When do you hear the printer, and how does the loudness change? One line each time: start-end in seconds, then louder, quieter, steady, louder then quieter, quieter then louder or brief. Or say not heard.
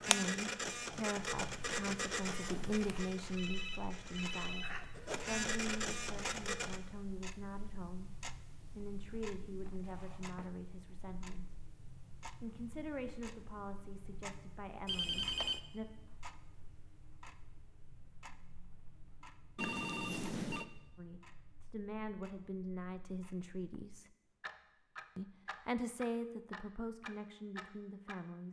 0.0-6.8 quieter then louder.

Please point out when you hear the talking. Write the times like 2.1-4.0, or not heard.
0.0-11.6, 12.4-15.8, 20.9-24.1, 25.1-28.4.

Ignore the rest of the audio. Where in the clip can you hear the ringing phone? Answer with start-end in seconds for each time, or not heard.
3.4-4.8, 14.8-15.6, 19.6-20.6.